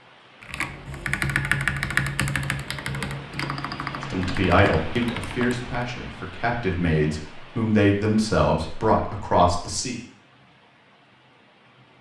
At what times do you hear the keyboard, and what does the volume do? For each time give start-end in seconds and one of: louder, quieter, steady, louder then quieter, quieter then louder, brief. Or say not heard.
0.4-5.7 quieter.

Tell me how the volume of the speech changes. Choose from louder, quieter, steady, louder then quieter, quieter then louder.
quieter then louder.